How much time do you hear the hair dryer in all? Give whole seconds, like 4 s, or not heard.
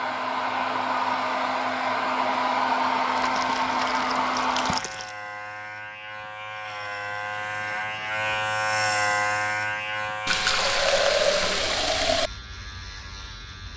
5 s.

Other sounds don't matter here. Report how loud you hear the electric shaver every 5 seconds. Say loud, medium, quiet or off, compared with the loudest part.
medium, loud, medium.